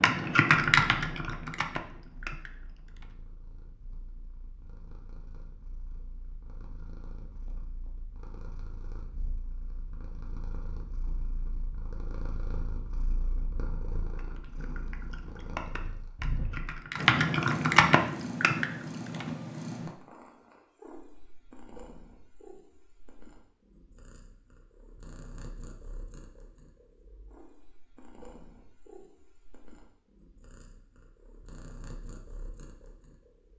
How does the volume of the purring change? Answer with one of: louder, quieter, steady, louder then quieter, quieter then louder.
louder then quieter.